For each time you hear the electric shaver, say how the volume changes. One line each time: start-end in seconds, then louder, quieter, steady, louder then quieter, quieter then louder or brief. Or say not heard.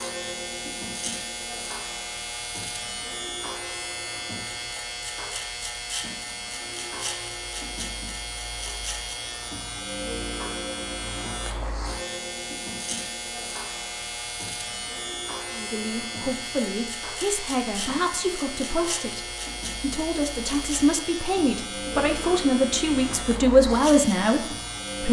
0.0-25.0 steady.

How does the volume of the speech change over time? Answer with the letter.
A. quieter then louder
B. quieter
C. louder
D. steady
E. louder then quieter
C.